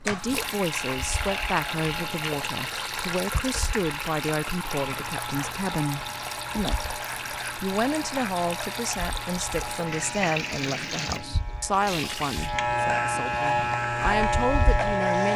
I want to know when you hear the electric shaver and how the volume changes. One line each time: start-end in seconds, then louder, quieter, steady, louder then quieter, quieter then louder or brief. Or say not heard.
0.1-15.3 louder.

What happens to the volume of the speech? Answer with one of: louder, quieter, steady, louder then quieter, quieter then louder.
steady.